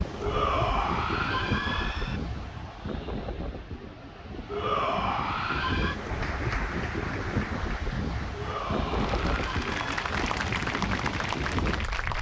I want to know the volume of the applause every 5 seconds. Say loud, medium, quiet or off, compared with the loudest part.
off, medium, loud.